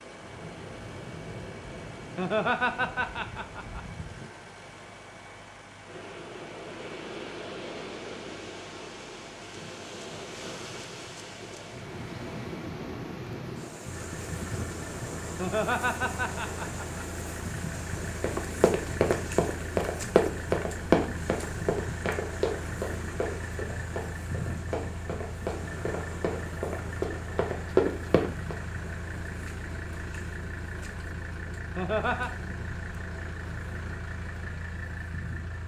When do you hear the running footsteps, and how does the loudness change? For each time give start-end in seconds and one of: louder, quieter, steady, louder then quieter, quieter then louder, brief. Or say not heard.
17.9-28.6 quieter then louder.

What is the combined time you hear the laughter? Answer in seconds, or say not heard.
4 s.